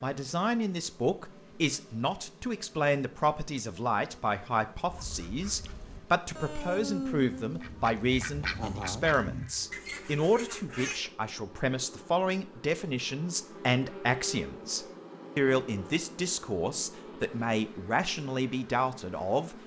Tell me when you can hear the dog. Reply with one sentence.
You can't hear the dog here.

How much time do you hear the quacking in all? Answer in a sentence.
You can hear the quacking for 6 seconds altogether.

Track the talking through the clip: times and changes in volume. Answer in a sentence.
The talking can be heard from 0.0 to 19.6 s, at a steady volume.